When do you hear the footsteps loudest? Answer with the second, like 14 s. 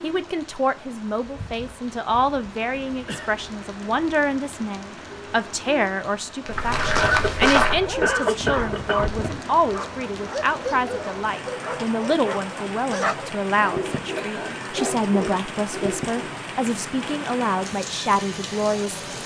8 s.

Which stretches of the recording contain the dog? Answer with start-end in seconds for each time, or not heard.
7.7-16.3.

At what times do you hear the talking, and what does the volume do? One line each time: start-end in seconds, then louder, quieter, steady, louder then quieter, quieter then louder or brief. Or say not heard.
0.0-19.0 steady.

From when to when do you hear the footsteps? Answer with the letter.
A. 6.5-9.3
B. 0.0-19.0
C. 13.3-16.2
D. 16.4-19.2
A.